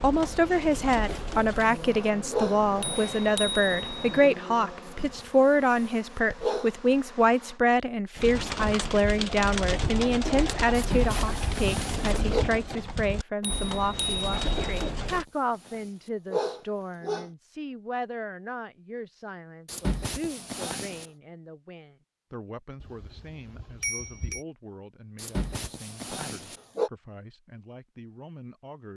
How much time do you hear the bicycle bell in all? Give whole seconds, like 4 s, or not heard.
5 s.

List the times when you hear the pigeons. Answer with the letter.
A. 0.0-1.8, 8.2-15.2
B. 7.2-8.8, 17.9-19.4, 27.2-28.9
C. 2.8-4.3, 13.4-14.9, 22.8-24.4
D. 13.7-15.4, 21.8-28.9
A.